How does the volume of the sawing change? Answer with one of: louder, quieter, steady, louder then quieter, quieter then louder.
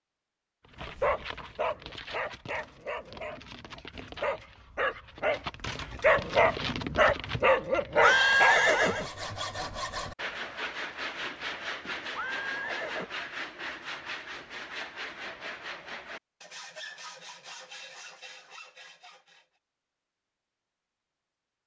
quieter.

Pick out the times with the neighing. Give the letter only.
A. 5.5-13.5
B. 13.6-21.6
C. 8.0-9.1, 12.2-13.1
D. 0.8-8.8
C.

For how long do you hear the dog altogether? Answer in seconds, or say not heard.
8 s.